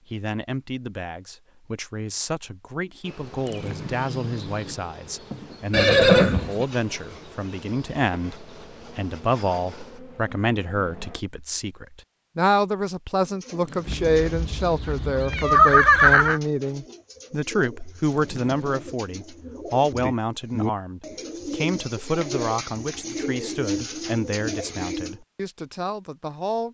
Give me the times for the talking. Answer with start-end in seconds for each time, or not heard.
0.1-26.6.